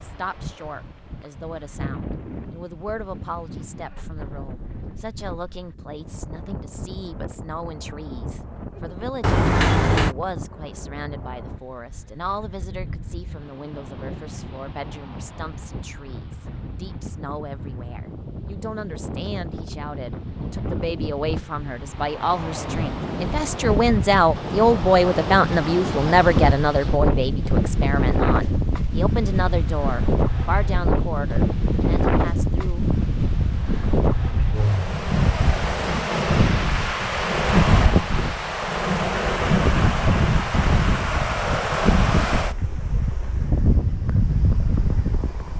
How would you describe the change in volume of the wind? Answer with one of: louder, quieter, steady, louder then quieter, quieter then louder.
louder.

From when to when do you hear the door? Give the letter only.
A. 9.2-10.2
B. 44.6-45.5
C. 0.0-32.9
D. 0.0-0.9
A.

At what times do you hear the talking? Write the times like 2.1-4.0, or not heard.
0.0-32.9.